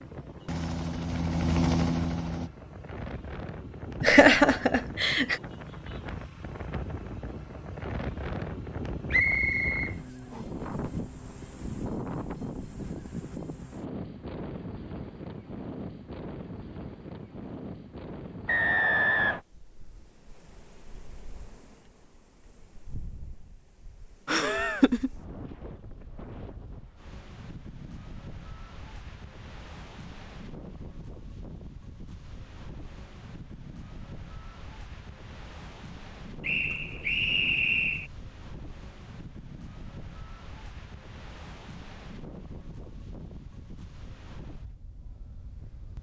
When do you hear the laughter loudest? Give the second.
4 s.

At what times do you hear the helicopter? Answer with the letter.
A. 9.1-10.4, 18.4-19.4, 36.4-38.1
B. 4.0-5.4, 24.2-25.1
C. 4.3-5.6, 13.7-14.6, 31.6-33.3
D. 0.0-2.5
D.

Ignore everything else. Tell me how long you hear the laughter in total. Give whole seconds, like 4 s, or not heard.
2 s.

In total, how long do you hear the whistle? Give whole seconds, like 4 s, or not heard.
4 s.